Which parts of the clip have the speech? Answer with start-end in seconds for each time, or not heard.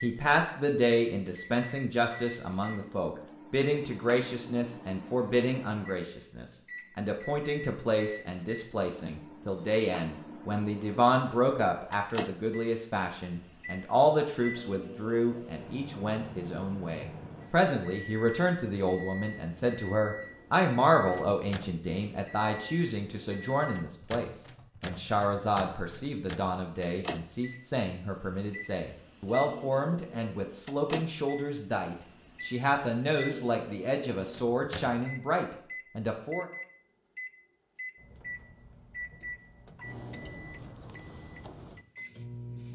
0.0-36.5.